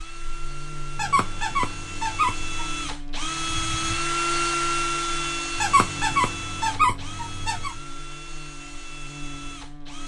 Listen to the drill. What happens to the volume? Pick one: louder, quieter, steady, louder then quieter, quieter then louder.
louder then quieter.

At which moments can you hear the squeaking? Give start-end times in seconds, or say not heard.
0.9-2.7, 5.5-7.8.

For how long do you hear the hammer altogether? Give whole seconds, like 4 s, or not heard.
not heard.